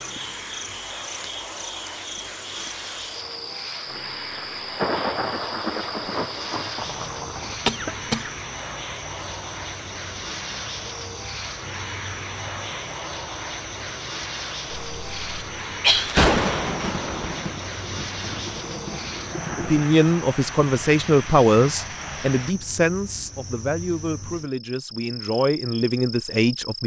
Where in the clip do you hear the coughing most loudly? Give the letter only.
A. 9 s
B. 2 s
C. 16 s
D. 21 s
C.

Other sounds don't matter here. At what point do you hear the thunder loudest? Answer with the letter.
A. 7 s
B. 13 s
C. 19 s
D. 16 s
D.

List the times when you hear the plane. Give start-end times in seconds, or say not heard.
0.0-22.6.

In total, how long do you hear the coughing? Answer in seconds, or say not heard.
2 s.